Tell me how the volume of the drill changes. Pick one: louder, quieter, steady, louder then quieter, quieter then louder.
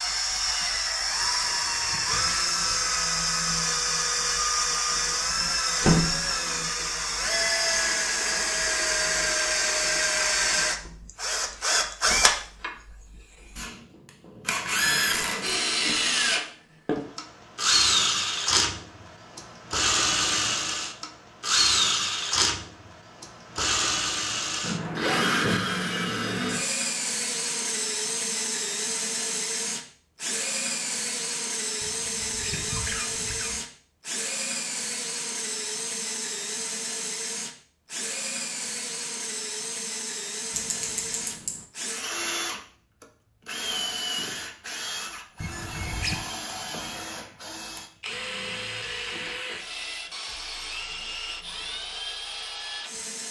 quieter.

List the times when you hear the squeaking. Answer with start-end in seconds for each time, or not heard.
1.2-3.0, 31.8-33.5, 45.4-46.2.